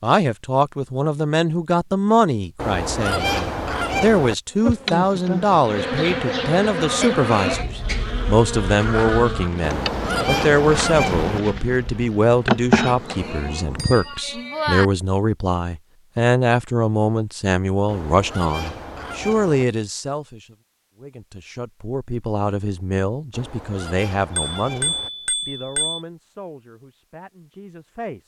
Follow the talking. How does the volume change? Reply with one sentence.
The volume of the talking goes down.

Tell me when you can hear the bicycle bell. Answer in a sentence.
You can hear the bicycle bell from 7.0 to 7.7 s, from 12.8 to 14.8 s and from 24.4 to 26.0 s.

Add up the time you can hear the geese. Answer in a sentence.
You can hear the geese for 7 seconds altogether.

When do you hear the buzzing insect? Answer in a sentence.
The buzzing insect can be heard from 4.6 to 14.1 s.